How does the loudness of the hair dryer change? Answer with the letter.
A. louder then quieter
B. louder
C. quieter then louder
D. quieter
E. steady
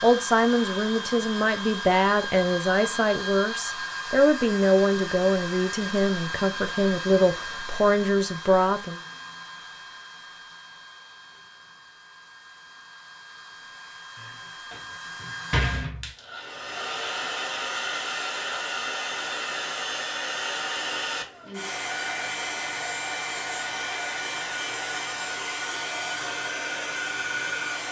C.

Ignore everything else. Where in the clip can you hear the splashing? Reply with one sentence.
The splashing can't be heard in this clip.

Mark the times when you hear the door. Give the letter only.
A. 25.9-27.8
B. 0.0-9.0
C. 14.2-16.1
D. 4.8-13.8
C.